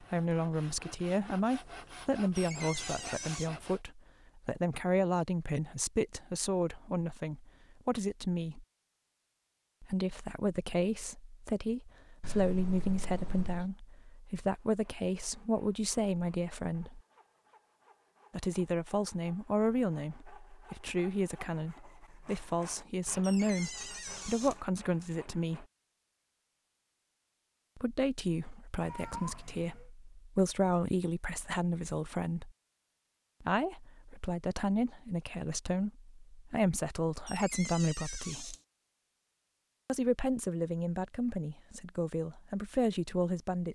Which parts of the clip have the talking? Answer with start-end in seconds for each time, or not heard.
0.0-8.7, 9.8-17.0, 18.3-25.6, 27.8-32.5, 33.4-38.5, 39.9-43.7.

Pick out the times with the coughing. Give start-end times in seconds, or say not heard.
not heard.